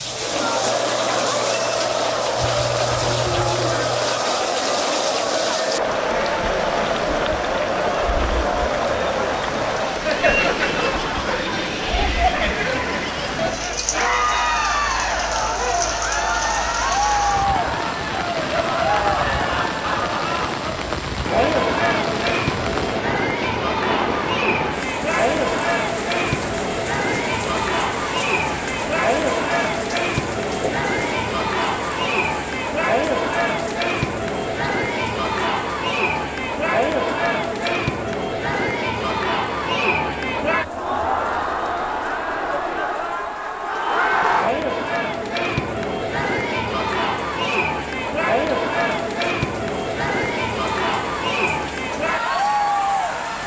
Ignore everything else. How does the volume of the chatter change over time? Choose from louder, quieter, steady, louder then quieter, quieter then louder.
steady.